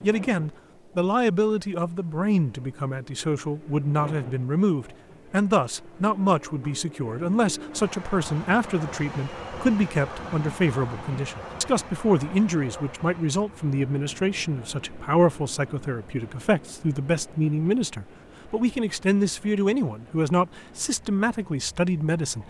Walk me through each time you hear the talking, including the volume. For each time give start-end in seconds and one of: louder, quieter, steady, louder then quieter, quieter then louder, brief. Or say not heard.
0.0-22.4 steady.